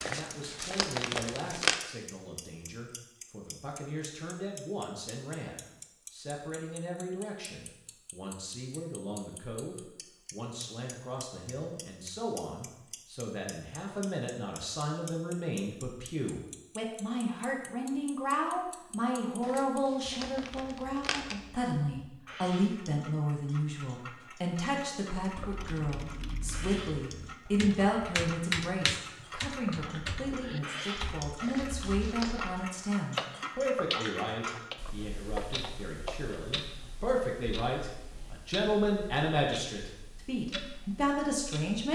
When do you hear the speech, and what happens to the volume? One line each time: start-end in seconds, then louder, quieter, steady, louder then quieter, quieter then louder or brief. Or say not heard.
0.0-41.9 louder.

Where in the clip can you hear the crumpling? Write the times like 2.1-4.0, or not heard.
0.0-1.8, 19.4-21.4, 31.4-32.5.